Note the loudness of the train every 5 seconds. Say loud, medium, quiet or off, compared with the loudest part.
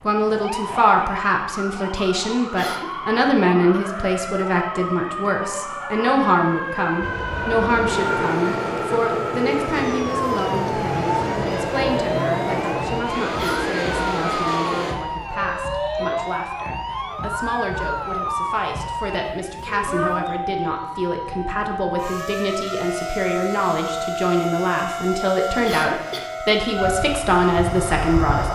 off, loud, loud, off, off, loud.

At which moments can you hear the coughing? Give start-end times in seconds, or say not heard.
2.4-3.0, 13.3-13.8, 25.6-26.3.